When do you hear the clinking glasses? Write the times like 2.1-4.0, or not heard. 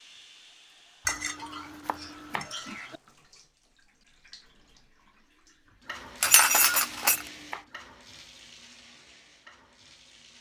1.1-3.0, 6.2-7.2.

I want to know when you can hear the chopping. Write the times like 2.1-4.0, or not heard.
1.1-2.5, 6.2-7.7.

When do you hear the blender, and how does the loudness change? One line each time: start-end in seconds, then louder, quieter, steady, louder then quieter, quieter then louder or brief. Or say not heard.
not heard.